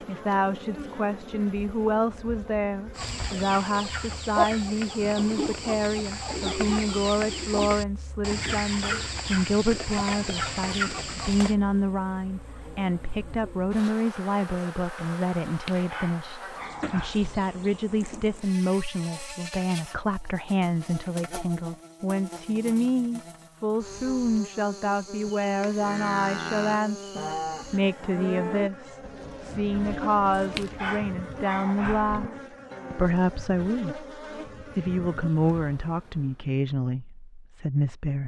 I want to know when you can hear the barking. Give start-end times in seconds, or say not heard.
15.4-17.4, 30.3-32.3.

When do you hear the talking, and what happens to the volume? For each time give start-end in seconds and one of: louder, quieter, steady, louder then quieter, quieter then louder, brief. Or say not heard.
0.1-38.2 steady.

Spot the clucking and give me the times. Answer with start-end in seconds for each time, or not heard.
3.0-11.6.